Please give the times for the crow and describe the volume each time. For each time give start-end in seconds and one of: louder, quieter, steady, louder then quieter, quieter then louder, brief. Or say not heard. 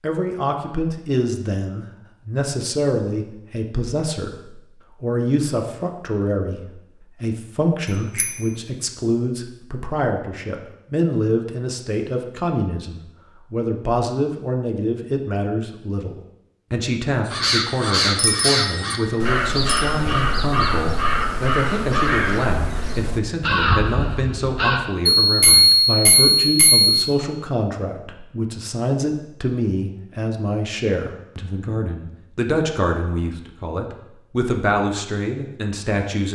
17.2-24.8 steady.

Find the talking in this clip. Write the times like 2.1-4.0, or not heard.
0.0-36.3.